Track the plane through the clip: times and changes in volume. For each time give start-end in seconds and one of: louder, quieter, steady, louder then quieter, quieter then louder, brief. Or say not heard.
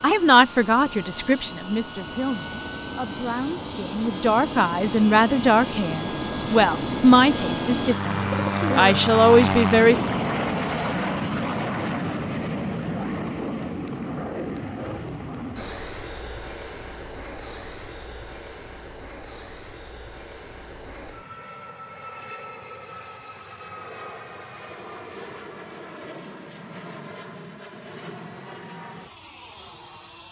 0.0-30.2 louder then quieter.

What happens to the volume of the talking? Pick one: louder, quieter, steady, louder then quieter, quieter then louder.
quieter then louder.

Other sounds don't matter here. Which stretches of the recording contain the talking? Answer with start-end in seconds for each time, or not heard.
0.0-10.0.